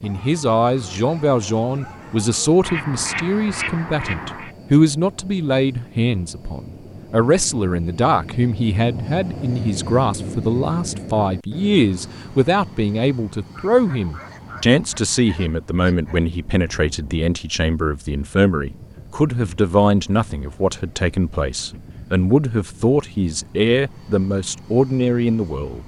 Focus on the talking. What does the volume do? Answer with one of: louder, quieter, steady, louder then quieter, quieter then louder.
steady.